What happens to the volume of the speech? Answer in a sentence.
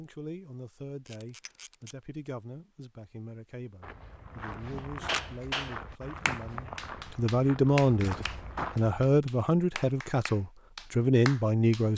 The loudness of the speech goes up.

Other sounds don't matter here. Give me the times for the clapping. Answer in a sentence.
You can hear the clapping from 5.0 to 11.8 s.